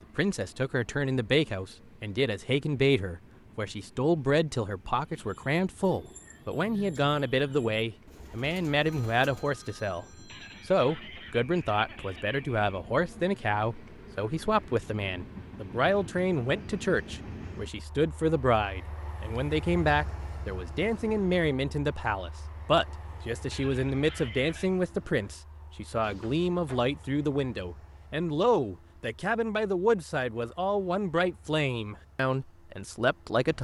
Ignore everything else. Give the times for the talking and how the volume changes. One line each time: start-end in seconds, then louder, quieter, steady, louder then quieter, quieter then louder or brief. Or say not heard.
0.1-10.1 steady
10.7-33.5 steady.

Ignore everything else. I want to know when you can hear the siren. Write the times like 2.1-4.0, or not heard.
not heard.